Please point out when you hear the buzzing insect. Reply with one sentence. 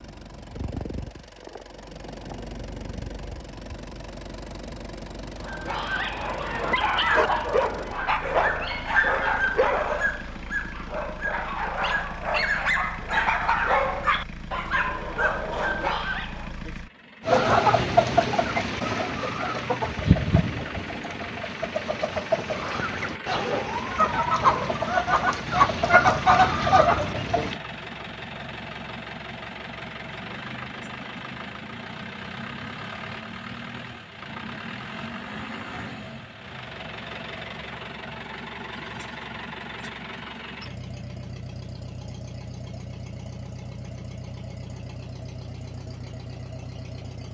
You can't hear the buzzing insect here.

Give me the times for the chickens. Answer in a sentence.
You can hear the chickens from 17.2 to 27.6 s.